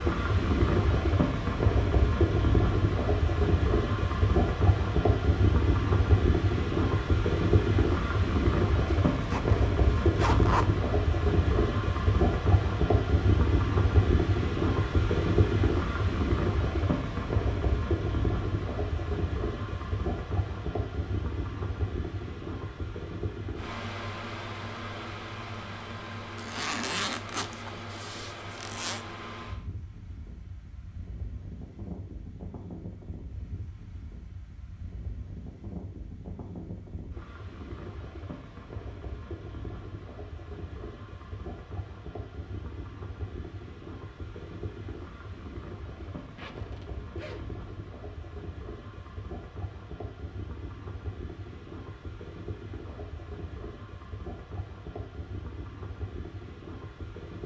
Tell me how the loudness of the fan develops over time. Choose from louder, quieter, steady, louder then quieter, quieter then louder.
quieter.